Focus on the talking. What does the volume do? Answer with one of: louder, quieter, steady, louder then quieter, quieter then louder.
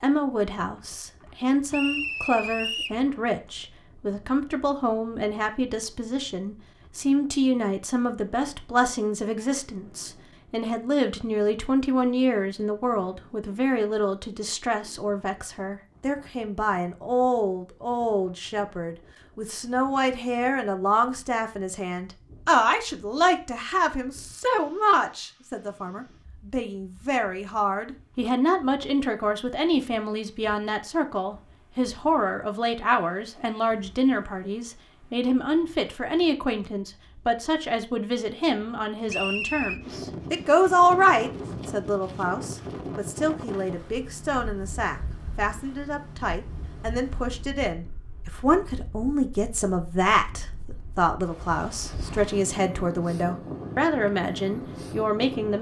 steady.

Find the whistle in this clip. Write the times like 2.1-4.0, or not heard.
1.7-3.0, 39.0-39.8.